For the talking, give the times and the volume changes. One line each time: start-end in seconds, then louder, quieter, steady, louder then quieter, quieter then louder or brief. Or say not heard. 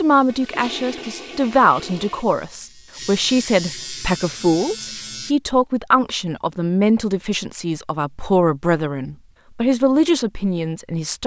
0.0-11.2 steady.